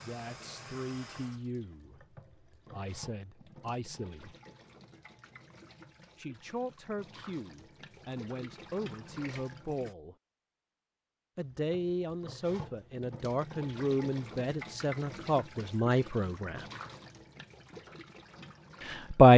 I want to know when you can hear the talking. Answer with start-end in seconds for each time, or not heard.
0.0-4.3, 6.2-10.2, 11.3-16.6, 18.8-19.3.